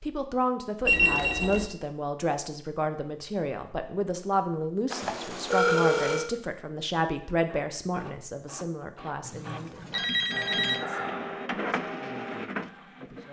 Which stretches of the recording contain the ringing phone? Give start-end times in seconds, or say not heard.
0.8-1.7, 4.9-6.3, 9.2-10.8.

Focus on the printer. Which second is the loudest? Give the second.
11 s.